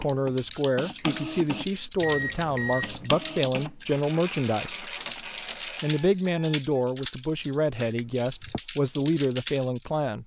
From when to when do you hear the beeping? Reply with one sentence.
The beeping can be heard from 2.0 to 3.1 s and from 5.8 to 6.8 s.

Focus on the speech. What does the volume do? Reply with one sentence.
The loudness of the speech stays about the same.